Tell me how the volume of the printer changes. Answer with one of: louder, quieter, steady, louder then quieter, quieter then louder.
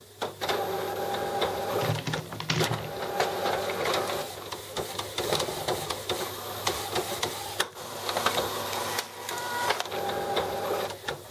steady.